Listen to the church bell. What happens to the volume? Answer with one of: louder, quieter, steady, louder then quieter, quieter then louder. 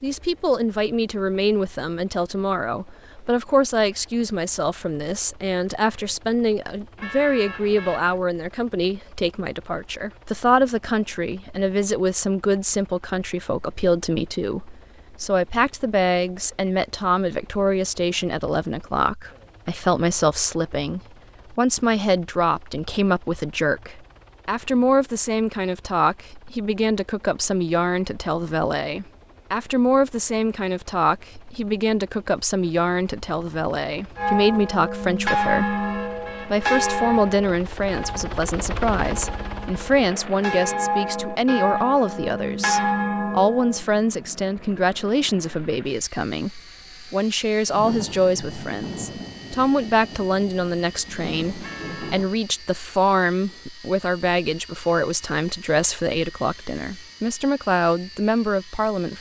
quieter then louder.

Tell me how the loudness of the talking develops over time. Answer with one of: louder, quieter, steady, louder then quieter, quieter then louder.
steady.